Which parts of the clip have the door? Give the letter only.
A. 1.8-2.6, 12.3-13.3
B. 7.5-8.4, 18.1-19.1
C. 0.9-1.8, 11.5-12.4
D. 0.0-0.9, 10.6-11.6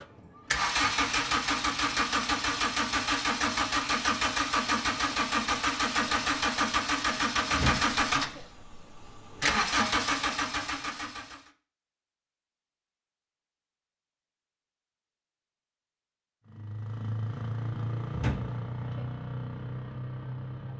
B.